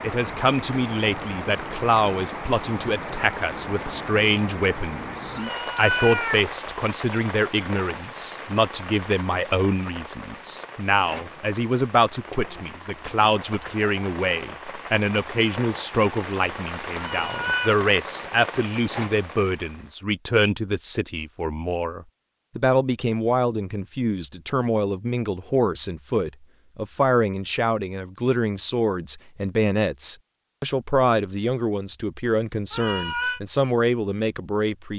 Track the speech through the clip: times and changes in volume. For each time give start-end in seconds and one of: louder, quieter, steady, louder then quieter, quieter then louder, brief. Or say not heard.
0.0-34.9 steady.